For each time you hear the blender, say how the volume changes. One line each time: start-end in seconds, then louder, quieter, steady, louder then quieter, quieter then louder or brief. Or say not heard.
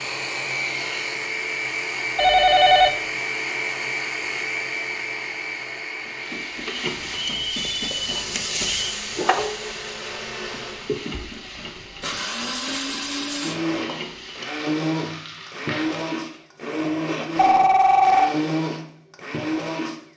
0.0-20.0 quieter then louder.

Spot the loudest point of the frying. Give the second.
9 s.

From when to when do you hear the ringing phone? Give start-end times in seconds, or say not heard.
2.1-2.9, 6.8-8.9, 17.4-18.3.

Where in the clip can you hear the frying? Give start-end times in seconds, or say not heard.
6.0-16.4.